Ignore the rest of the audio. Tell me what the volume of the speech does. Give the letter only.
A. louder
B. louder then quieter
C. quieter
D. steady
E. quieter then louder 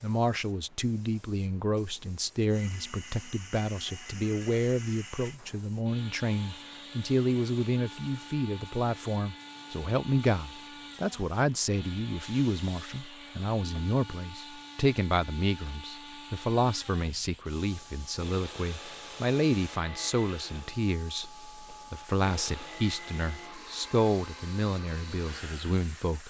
D.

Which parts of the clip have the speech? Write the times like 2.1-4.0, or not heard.
0.0-26.2.